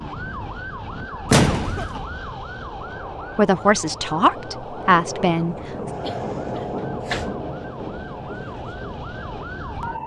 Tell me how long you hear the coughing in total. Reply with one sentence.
You can hear the coughing for 2 seconds altogether.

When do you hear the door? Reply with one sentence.
You can hear the door from 1.3 to 2.0 s and from 6.8 to 7.4 s.